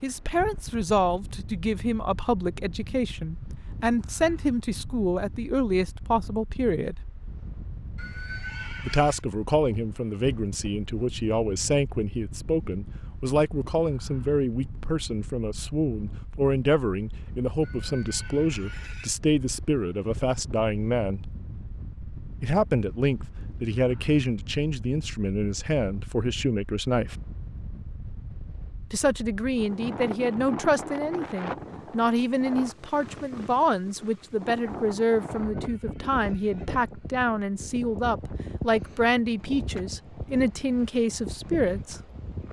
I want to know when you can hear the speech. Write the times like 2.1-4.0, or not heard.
0.0-7.0, 8.8-21.4, 22.4-27.1, 28.9-42.0.